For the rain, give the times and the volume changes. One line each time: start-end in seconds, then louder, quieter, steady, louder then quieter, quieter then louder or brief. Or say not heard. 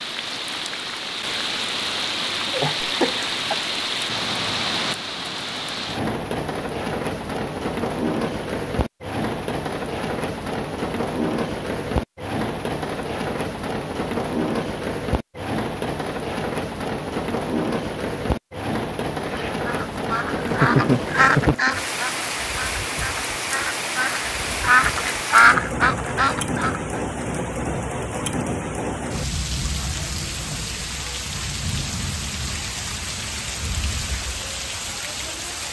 0.0-35.6 steady.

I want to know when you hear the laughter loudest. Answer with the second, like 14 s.
21 s.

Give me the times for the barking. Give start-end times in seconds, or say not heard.
not heard.